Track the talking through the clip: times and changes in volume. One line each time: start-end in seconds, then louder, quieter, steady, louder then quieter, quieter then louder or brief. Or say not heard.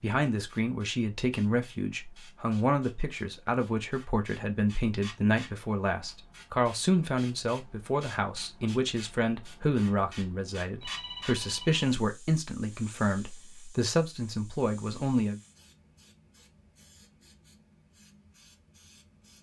0.0-15.4 steady.